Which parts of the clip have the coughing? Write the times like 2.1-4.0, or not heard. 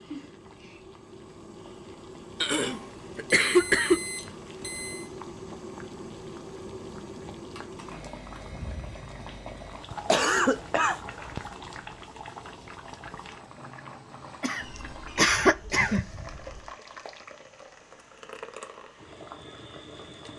2.4-4.0, 9.9-11.4, 14.4-16.2.